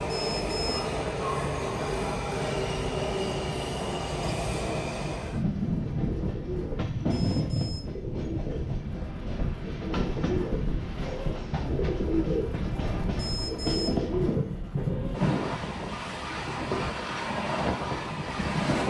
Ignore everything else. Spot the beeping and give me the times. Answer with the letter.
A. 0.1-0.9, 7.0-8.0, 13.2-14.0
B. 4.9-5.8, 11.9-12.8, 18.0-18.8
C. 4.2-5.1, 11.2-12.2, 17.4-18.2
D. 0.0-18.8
A.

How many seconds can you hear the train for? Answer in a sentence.
The train can be heard for 19 seconds in total.